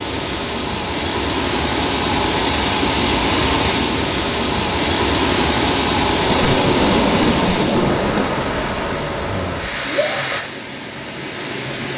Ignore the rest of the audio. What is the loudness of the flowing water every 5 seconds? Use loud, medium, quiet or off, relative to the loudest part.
loud, loud, medium.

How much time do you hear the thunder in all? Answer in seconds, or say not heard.
3 s.